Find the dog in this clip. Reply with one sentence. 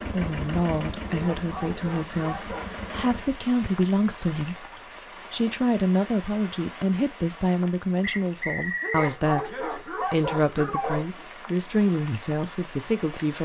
You can hear the dog from 1.1 to 2.8 s and from 8.8 to 11.2 s.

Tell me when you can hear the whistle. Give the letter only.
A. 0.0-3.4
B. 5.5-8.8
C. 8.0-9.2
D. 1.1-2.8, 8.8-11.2
C.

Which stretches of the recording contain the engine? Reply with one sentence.
The engine can be heard from 0.0 to 3.4 s.